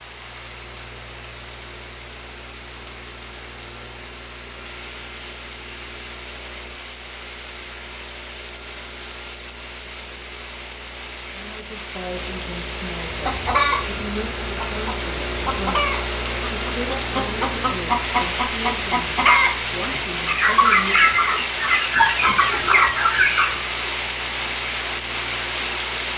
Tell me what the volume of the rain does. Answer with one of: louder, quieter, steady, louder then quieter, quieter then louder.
louder.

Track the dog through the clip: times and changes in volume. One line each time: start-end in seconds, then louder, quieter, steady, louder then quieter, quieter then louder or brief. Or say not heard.
not heard.